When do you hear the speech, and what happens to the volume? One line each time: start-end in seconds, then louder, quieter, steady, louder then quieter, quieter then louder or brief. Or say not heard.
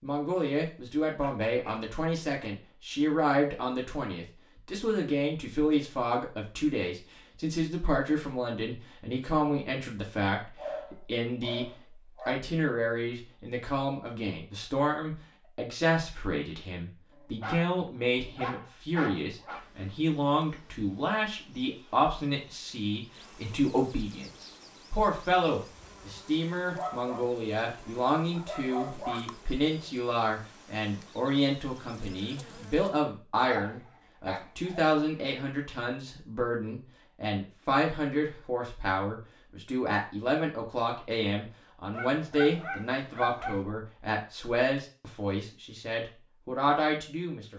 0.0-47.5 steady.